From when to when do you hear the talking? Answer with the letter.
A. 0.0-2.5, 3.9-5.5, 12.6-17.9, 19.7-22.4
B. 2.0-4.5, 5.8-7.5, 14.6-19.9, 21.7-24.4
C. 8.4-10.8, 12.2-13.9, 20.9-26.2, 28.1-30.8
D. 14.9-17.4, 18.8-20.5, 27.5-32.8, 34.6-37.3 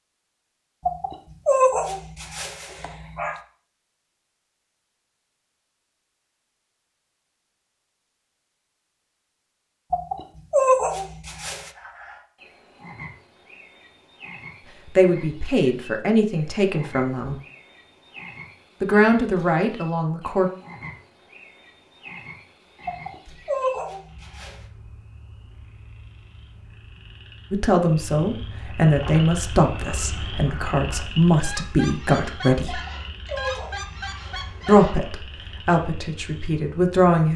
D.